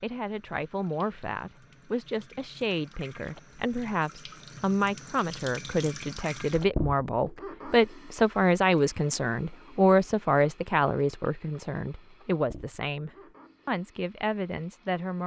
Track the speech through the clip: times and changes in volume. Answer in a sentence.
You can hear the speech from 0.0 to 15.2 s, getting louder then quieter.